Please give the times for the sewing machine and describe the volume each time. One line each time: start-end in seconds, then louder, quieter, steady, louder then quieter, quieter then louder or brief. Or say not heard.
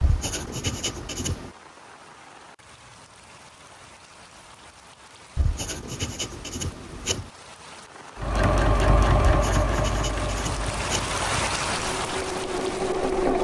8.2-13.3 quieter then louder.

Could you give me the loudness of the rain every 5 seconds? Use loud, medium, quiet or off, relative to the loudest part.
quiet, quiet, loud.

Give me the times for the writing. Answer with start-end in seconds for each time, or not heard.
0.0-1.5, 5.3-7.3, 9.3-11.2.